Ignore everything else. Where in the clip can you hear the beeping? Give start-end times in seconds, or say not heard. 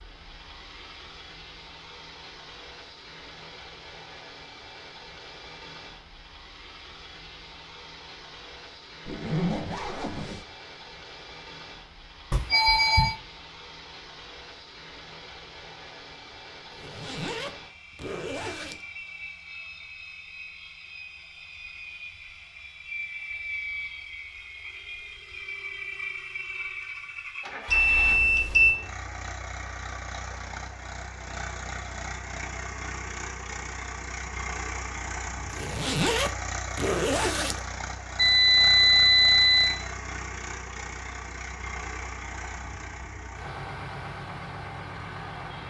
12.3-13.2, 27.6-28.8, 38.1-39.8.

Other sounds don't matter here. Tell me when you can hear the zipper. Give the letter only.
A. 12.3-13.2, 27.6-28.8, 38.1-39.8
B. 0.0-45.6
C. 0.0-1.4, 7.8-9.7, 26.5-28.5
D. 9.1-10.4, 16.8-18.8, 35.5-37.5
D.